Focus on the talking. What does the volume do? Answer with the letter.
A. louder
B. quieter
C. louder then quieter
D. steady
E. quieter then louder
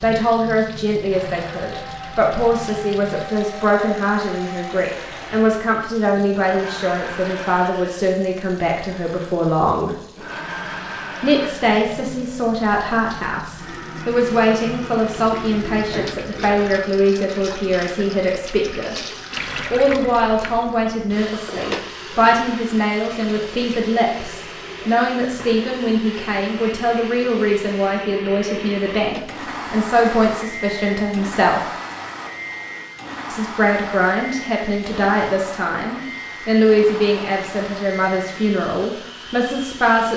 D.